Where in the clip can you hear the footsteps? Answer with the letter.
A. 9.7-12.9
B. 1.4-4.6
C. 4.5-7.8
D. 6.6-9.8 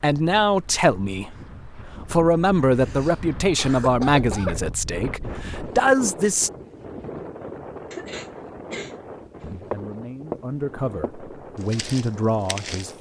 A.